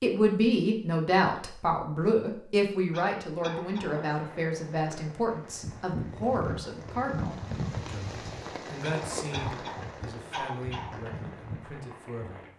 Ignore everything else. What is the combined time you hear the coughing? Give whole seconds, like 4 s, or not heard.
3 s.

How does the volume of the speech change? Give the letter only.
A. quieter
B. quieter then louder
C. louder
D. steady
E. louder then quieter
A.